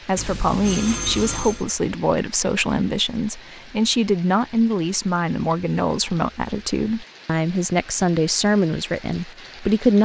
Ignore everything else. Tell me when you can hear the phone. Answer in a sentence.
The phone can be heard from 0.1 to 1.6 s.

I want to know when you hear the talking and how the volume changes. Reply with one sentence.
You can hear the talking from 0.1 to 10.0 s, at a steady volume.